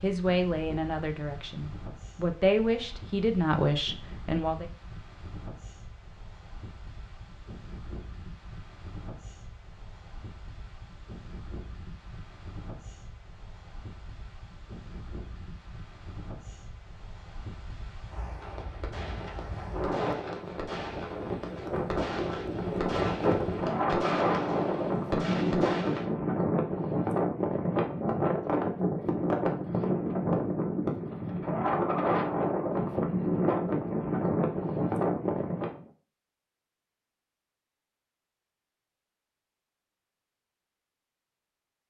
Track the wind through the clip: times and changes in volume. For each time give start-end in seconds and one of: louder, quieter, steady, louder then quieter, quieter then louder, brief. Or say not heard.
0.0-35.8 louder.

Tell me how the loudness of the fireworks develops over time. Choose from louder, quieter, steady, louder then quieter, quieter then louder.
louder.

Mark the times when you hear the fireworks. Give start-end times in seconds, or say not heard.
18.4-26.1.